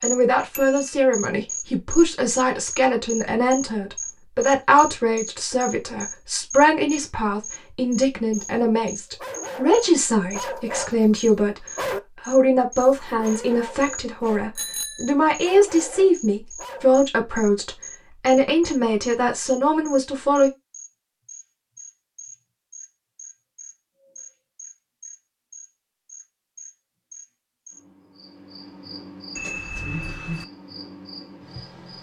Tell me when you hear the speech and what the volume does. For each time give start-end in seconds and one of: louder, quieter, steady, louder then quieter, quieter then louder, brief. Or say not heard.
0.0-20.5 steady.